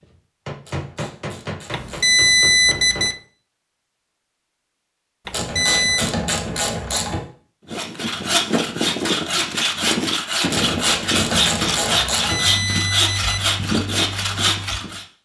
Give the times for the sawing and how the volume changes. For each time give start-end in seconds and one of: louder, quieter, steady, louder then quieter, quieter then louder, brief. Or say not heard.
7.7-15.1 steady.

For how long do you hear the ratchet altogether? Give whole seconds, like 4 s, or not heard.
6 s.